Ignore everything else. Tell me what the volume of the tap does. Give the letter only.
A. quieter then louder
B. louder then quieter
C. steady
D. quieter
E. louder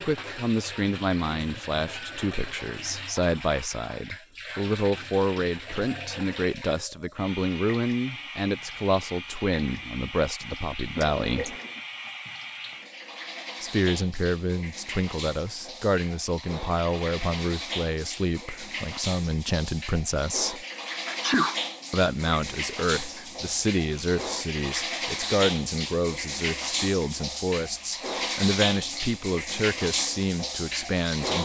E.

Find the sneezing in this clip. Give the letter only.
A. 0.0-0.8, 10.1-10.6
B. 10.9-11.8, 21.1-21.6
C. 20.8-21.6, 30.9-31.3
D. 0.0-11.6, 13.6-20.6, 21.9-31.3
B.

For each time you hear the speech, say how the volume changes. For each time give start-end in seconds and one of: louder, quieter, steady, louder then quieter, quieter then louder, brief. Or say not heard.
0.0-11.6 steady
13.6-20.6 steady
21.9-31.3 steady.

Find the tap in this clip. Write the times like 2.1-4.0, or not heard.
0.0-31.3.